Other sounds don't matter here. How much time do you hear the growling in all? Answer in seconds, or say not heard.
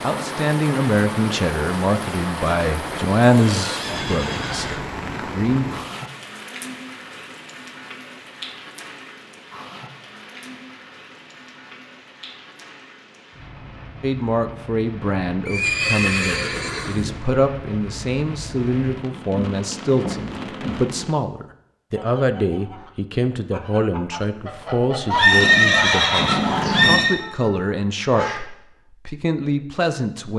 2 s.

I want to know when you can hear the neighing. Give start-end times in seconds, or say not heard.
3.2-4.8, 15.4-17.1, 25.1-27.1.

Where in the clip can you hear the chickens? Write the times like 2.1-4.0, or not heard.
21.9-28.4.